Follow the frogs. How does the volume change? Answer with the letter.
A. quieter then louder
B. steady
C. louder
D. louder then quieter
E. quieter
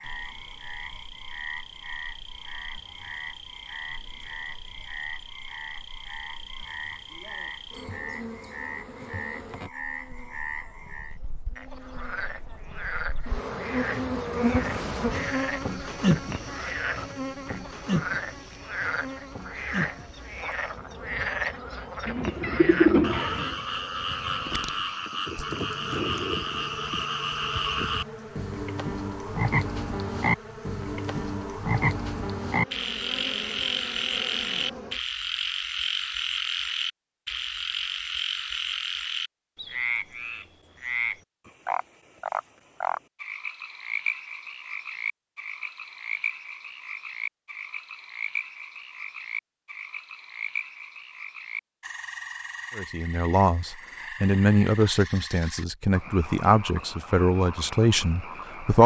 D.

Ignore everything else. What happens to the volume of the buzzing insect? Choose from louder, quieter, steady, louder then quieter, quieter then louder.
louder then quieter.